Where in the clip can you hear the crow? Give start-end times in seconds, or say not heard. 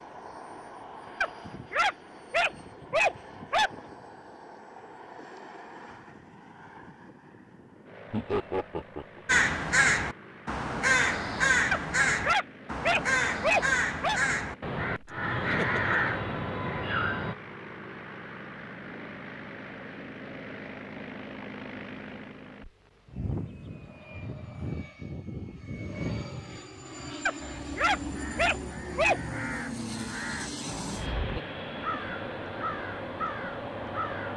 9.2-17.4, 27.4-34.3.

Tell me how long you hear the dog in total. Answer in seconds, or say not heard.
7 s.